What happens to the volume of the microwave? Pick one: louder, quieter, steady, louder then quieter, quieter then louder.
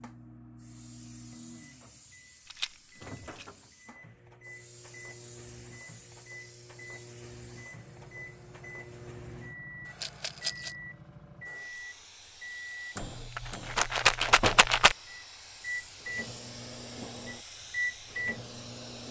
louder.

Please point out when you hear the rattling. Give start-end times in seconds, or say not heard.
2.5-3.5, 10.0-10.8, 13.0-14.9.